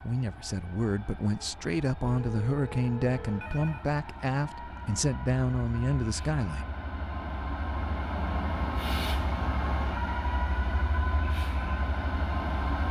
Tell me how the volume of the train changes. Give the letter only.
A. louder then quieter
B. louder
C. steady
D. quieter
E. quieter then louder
B.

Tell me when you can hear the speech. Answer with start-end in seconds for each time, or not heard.
0.0-6.7.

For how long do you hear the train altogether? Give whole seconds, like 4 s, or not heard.
13 s.